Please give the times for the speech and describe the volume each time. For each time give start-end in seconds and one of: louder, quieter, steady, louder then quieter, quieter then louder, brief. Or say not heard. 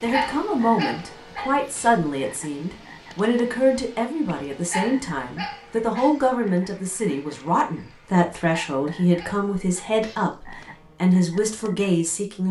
0.0-12.4 steady.